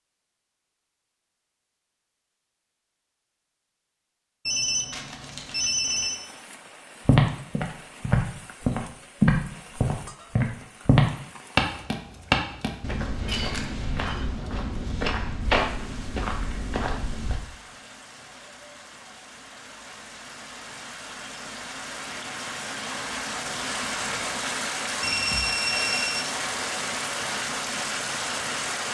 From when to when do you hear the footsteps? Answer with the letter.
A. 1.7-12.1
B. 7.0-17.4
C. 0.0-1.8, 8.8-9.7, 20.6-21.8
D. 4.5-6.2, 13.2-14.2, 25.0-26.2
B.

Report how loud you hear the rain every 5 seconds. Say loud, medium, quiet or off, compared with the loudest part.
off, quiet, quiet, quiet, loud, loud.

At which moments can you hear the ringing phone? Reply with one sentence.
You can hear the ringing phone from 4.5 to 6.2 s, from 13.2 to 14.2 s and from 25.0 to 26.2 s.